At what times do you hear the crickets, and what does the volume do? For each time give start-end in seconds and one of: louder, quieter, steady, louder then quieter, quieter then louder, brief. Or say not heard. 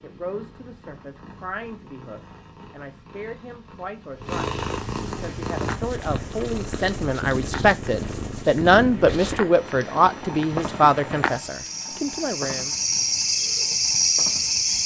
5.2-14.8 louder.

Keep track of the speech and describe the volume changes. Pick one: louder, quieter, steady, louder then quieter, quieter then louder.
louder.